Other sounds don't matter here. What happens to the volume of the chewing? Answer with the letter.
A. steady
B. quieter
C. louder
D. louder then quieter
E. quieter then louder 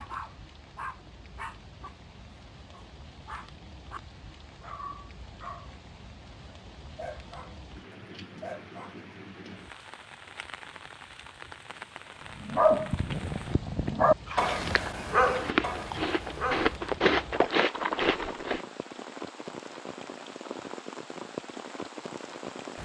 C.